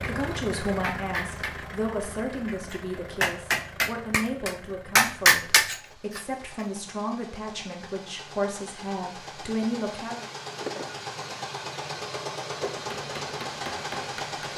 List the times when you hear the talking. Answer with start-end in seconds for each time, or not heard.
0.0-10.2.